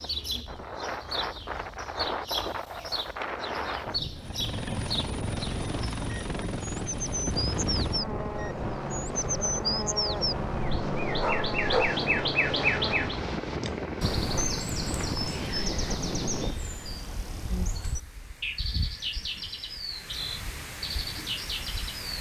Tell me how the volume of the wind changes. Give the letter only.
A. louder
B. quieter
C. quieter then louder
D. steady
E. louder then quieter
B.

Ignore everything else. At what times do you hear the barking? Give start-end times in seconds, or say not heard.
11.2-12.0.